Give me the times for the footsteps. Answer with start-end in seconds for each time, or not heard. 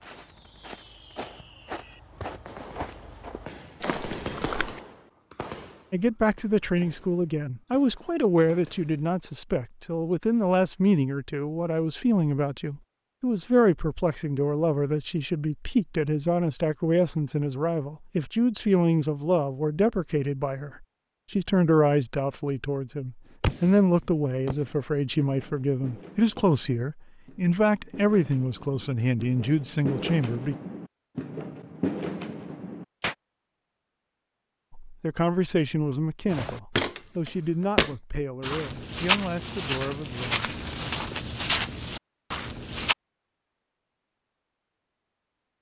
0.0-4.8, 36.3-43.0.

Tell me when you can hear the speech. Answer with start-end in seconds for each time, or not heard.
5.9-30.6, 34.7-40.4.